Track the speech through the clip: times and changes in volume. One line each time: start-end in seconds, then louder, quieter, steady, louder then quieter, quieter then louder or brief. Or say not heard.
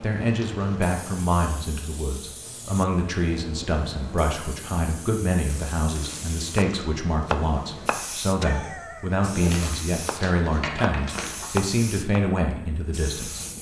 0.0-13.4 steady.